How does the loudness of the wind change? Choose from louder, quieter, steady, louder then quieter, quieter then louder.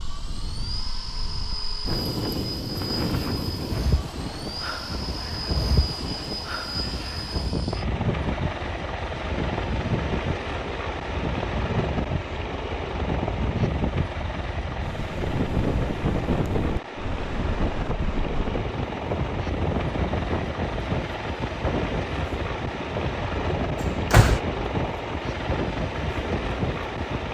steady.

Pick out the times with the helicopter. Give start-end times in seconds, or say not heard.
0.0-27.2.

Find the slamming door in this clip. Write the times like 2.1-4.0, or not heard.
23.8-24.4.